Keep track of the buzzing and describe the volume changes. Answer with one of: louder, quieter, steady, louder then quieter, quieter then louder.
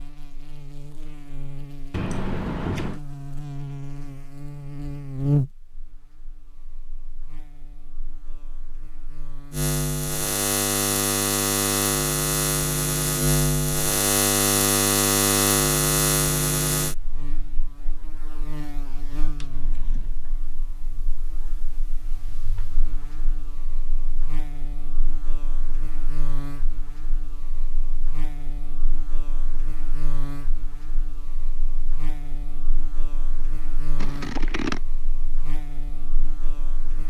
louder then quieter.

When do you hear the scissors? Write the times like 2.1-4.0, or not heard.
1.9-3.0, 19.4-20.2, 34.0-34.8.